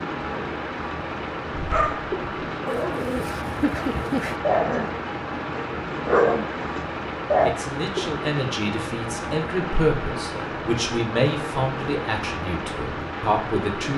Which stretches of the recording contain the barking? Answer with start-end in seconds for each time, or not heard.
1.6-7.5.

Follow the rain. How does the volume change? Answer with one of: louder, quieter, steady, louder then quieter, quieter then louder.
steady.